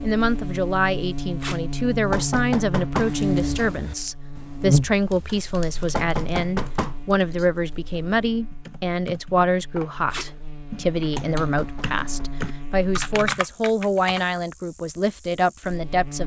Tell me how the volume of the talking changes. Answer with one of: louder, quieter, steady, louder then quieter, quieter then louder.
steady.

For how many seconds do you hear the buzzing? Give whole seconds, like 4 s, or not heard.
16 s.